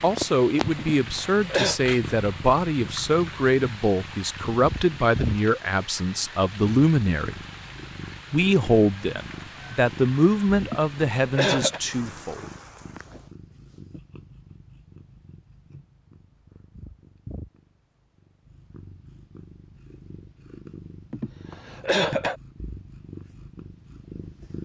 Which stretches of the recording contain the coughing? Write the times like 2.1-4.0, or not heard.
0.8-1.8, 10.6-11.8, 21.1-22.4.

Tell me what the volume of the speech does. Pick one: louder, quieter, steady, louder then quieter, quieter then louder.
steady.